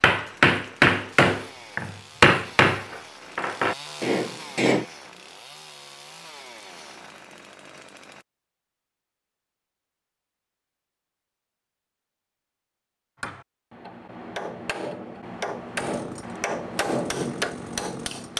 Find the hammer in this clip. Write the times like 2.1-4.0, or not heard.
0.0-4.8, 13.2-18.3.